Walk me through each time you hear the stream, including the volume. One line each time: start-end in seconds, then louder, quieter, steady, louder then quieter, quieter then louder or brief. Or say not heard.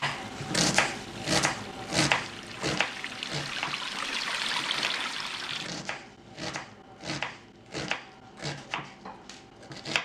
0.1-5.7 louder.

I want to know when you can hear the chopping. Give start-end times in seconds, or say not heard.
0.0-10.0.